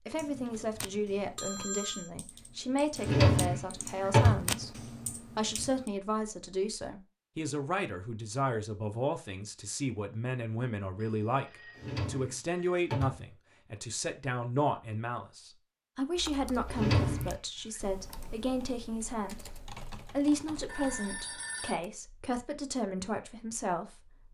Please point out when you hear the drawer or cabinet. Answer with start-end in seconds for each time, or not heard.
3.0-4.5, 11.8-13.2, 16.6-17.4.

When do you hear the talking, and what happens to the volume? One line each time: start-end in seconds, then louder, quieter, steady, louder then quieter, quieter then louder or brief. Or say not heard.
0.1-24.2 steady.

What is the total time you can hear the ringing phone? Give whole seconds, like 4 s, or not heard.
4 s.